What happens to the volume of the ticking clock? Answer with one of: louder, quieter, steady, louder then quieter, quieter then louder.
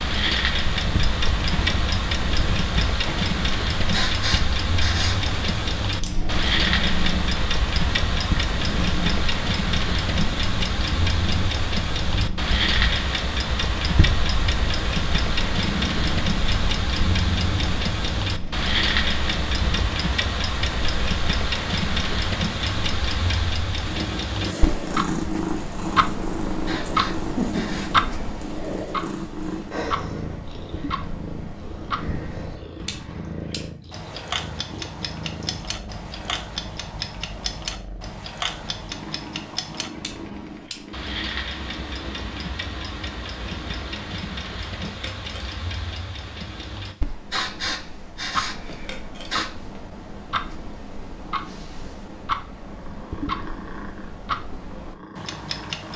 quieter.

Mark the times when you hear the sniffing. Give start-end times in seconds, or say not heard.
3.9-5.3, 26.6-28.1, 47.3-49.5.